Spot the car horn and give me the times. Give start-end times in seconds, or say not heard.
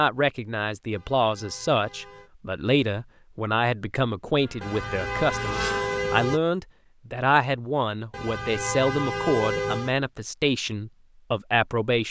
0.9-2.3, 4.6-6.4, 8.1-9.9.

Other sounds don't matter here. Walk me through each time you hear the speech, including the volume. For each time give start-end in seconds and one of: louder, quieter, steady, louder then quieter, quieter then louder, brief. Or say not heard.
0.0-12.0 steady.